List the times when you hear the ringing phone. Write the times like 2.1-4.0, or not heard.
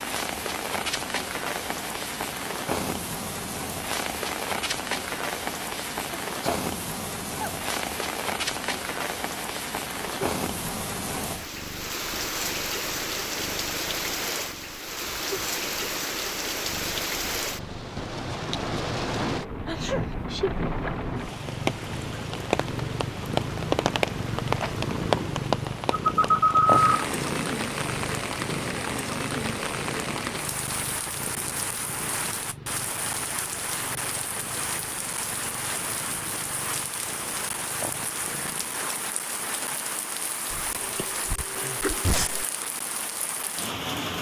25.9-27.1.